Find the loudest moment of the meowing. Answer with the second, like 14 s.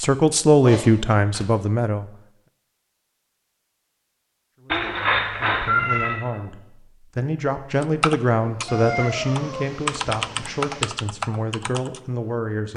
6 s.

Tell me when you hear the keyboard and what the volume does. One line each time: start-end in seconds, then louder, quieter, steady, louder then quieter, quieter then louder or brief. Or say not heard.
7.8-12.7 louder then quieter.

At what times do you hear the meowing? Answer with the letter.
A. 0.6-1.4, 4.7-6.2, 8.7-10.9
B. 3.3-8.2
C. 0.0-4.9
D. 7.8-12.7
A.